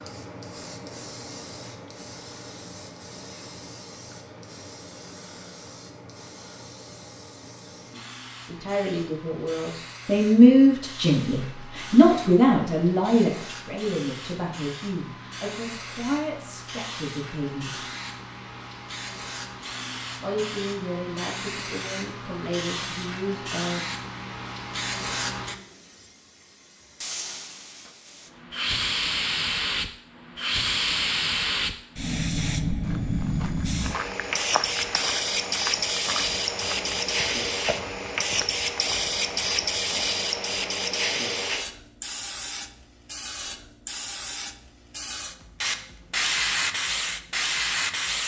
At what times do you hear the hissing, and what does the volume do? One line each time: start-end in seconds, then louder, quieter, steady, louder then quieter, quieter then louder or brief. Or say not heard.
0.0-48.2 louder.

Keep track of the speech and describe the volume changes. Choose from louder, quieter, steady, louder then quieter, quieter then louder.
quieter.